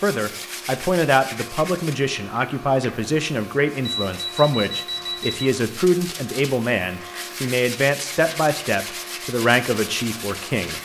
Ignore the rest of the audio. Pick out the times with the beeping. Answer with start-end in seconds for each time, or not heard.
3.9-5.5.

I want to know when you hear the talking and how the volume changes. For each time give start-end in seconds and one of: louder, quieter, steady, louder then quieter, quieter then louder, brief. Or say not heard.
0.0-10.8 steady.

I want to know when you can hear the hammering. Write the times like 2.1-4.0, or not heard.
not heard.